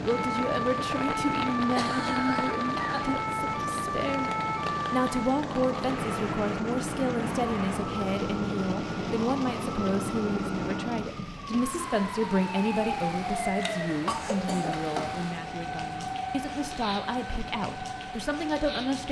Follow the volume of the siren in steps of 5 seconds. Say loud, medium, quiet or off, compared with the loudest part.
loud, loud, loud, medium.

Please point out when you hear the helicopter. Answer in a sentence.
The helicopter can be heard from 0.0 to 10.8 s.